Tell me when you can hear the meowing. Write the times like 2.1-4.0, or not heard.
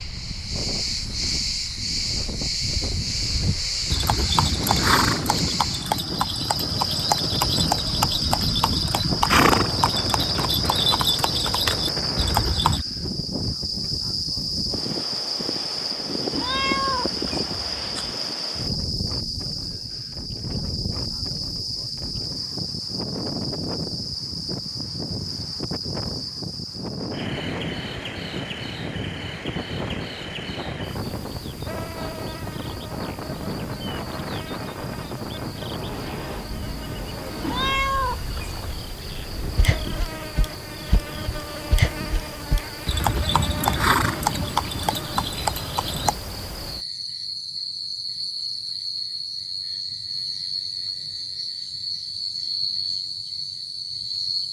16.3-18.1, 37.4-38.8.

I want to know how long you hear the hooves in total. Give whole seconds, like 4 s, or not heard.
17 s.